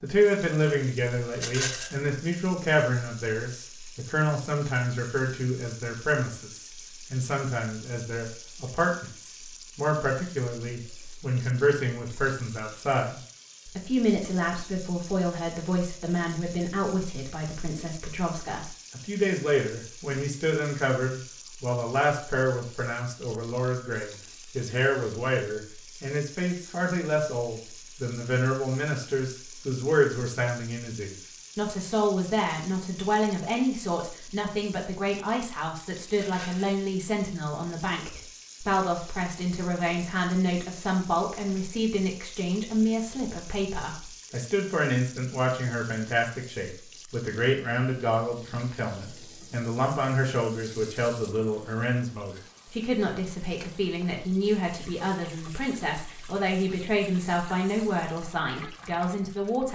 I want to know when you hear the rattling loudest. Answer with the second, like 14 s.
2 s.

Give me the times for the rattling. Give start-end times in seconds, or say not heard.
1.4-2.0, 36.1-36.8.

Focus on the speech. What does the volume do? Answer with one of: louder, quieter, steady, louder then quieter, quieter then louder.
steady.